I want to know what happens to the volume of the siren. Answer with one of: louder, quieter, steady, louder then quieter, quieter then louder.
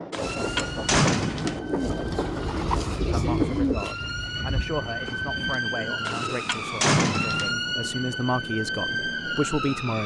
louder.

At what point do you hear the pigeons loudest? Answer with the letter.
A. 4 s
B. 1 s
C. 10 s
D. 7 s
A.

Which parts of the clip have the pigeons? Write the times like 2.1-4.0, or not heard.
0.2-6.4.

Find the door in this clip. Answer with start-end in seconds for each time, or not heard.
0.1-1.6, 6.0-7.5.